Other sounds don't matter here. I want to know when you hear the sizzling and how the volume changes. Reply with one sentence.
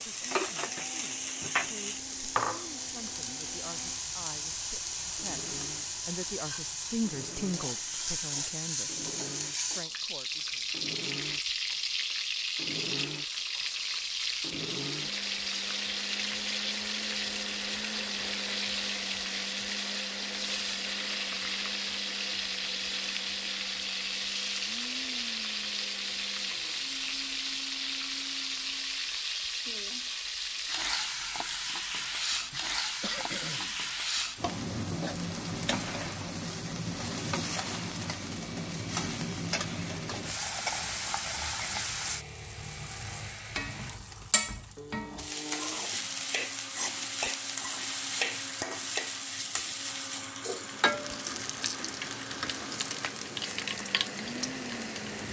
You can hear the sizzling from 0.0 to 55.2 s, at a steady volume.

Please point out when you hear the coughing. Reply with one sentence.
You can hear the coughing from 32.5 to 33.8 s.